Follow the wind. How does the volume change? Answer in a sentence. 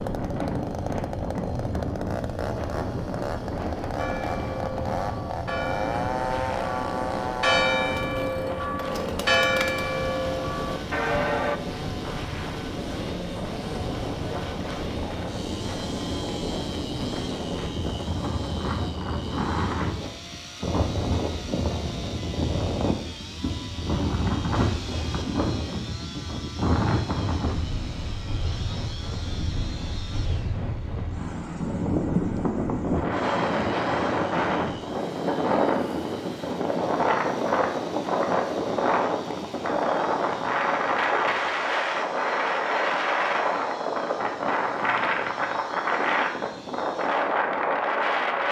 The volume of the wind goes up.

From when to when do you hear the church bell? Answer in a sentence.
You can hear the church bell from 4.0 to 11.6 s.